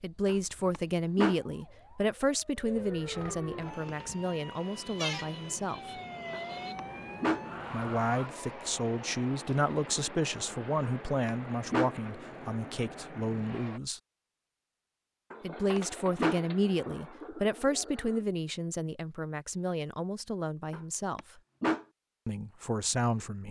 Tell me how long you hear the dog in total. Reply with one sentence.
You can hear the dog for 6 seconds altogether.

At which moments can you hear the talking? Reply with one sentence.
You can hear the talking from 0.0 to 5.8 s, from 7.7 to 14.0 s, from 15.4 to 21.2 s and from 22.2 to 23.4 s.